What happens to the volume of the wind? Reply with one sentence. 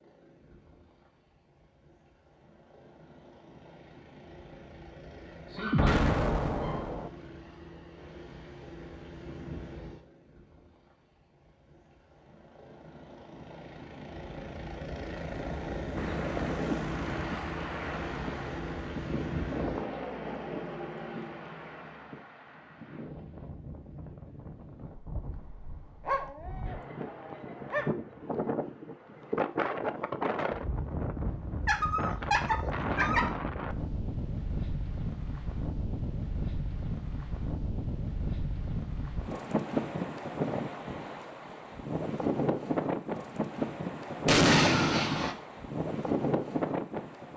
The loudness of the wind goes up.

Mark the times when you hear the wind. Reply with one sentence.
You can hear the wind from 15.9 to 47.3 s.